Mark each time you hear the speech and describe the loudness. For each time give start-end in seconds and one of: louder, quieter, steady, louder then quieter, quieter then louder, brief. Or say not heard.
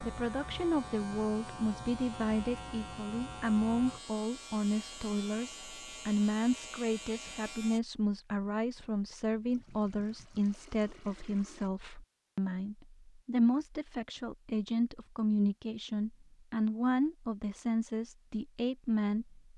0.0-19.5 steady.